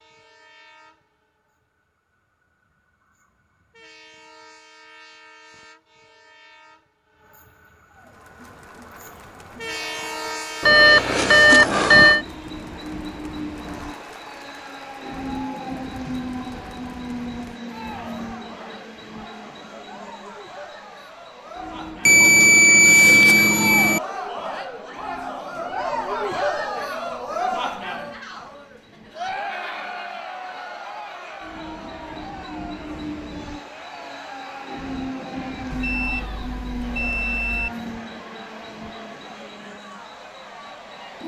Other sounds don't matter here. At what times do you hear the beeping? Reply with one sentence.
The beeping can be heard from 10.6 to 12.2 s, from 22.1 to 24.0 s and from 35.8 to 37.7 s.